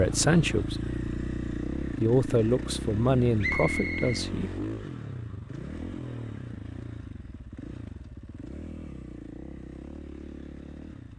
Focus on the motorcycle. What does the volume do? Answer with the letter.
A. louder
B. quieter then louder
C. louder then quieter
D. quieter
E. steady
D.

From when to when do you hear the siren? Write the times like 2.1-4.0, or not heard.
not heard.